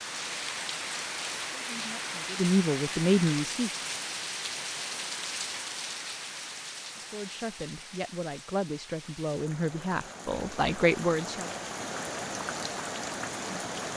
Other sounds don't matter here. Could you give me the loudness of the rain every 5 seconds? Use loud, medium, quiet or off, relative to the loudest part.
loud, medium, loud.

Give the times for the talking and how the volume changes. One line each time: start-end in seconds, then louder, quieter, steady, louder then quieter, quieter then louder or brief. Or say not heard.
1.6-3.7 brief
7.0-11.5 louder.